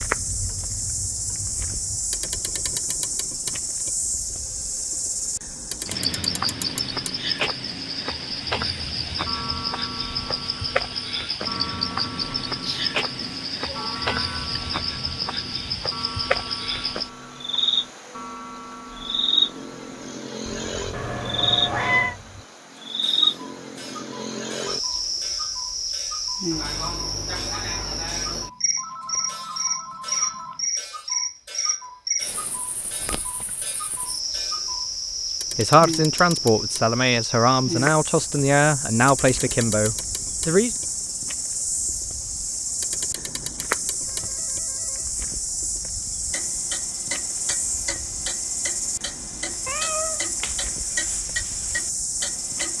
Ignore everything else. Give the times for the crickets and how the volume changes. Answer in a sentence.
You can hear the crickets from 0.0 to 52.7 s, at a steady volume.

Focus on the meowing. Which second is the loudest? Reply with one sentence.
The loudest moment of the meowing is at 22 seconds.